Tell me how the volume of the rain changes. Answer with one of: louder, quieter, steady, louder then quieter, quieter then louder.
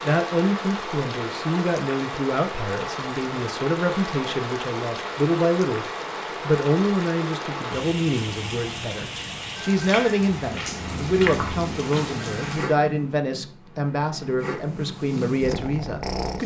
steady.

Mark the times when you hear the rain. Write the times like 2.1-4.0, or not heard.
0.0-12.8.